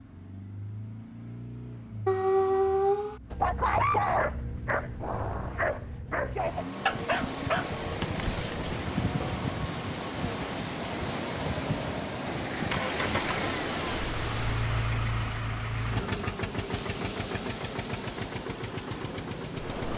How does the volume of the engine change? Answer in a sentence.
The loudness of the engine goes up.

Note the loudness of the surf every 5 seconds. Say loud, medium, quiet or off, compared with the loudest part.
off, loud, loud, medium.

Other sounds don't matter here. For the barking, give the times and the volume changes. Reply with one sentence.
The barking can be heard from 2.0 to 9.4 s, getting quieter.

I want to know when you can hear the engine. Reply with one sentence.
The engine can be heard from 0.0 to 19.9 s.